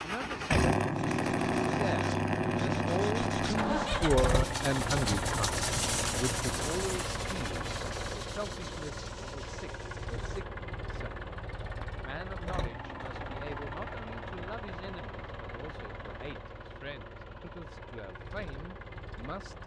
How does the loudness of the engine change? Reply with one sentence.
The loudness of the engine goes down.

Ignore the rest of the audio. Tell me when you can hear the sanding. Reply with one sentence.
The sanding can be heard from 0.9 to 10.4 s.